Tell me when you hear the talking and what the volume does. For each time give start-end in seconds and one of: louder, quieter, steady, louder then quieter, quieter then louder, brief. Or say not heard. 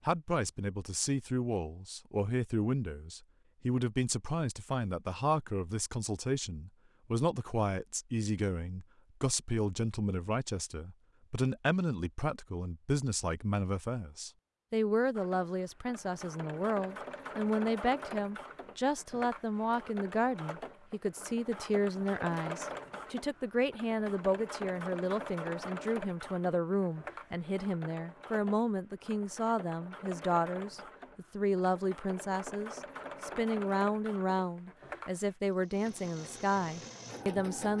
0.1-37.7 steady.